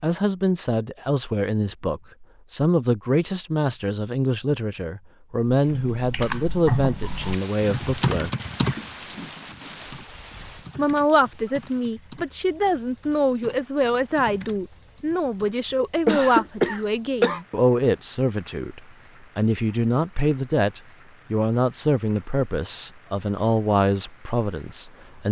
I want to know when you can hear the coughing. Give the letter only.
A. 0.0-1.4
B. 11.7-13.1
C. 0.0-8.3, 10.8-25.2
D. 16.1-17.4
D.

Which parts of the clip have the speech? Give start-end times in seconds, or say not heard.
0.0-8.3, 10.8-25.2.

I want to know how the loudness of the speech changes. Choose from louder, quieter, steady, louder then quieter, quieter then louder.
steady.